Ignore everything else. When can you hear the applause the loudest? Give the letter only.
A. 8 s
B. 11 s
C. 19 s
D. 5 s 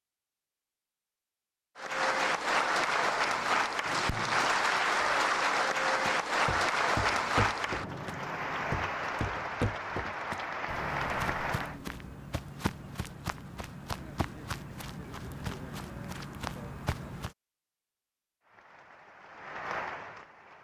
D.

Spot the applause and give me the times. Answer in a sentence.
The applause can be heard from 1.8 to 11.8 s and from 18.4 to 20.5 s.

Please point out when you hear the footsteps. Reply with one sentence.
The footsteps can be heard from 6.0 to 17.4 s.